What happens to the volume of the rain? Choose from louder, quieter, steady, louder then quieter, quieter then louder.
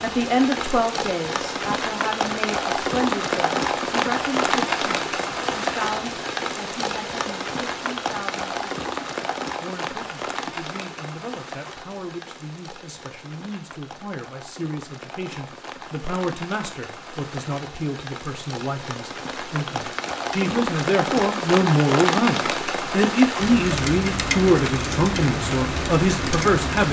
quieter then louder.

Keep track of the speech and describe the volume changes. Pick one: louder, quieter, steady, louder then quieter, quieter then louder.
quieter then louder.